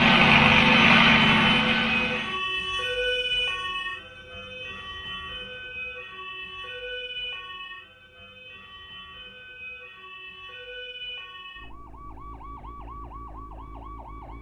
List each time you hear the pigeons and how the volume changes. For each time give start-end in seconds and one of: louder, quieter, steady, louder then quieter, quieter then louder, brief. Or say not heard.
not heard.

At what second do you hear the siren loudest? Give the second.
1 s.